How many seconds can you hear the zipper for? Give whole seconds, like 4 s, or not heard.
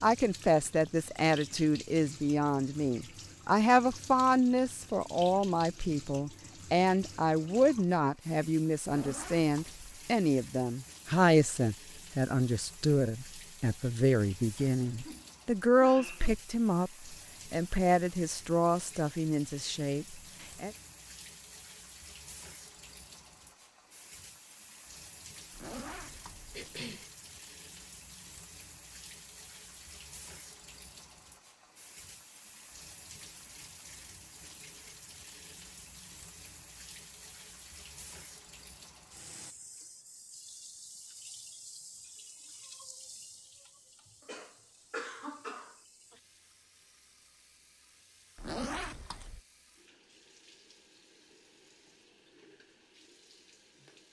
3 s.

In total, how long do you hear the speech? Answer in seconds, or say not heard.
21 s.